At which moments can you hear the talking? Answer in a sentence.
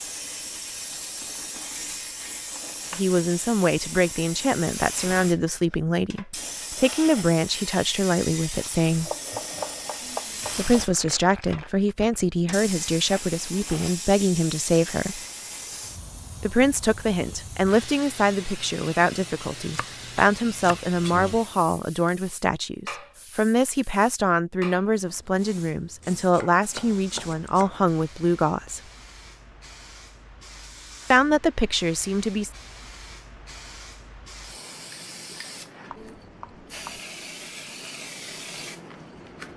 You can hear the talking from 3.0 to 9.1 s, from 10.6 to 15.2 s, from 16.4 to 28.8 s and from 31.1 to 32.5 s.